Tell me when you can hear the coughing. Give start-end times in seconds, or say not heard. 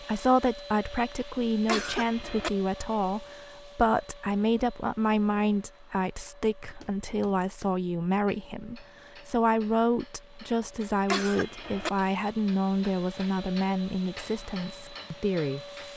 1.6-2.5, 11.1-11.9.